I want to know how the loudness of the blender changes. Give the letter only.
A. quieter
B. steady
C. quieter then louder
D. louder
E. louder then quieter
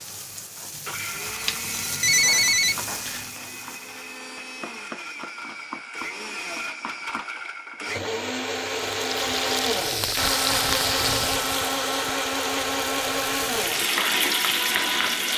D.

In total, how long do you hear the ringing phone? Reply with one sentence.
The ringing phone can be heard for 2 seconds in total.